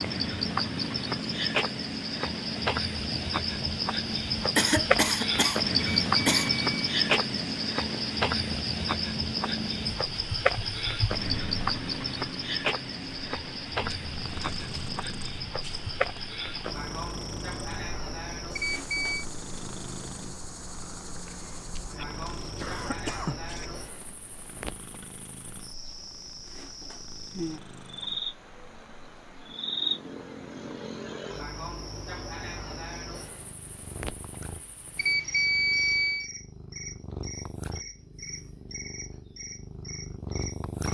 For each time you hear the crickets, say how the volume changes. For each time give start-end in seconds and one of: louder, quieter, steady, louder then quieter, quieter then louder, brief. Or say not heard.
0.0-40.8 quieter.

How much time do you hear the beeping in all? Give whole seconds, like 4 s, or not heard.
3 s.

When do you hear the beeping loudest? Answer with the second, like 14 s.
36 s.